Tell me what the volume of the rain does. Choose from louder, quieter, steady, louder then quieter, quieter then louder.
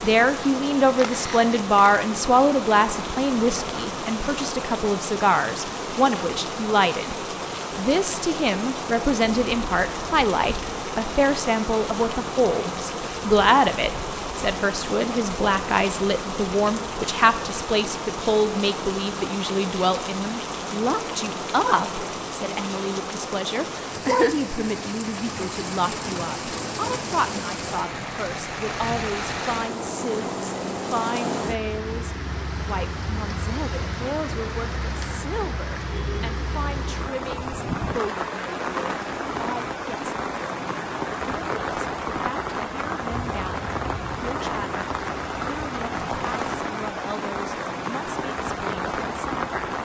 steady.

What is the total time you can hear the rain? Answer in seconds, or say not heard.
50 s.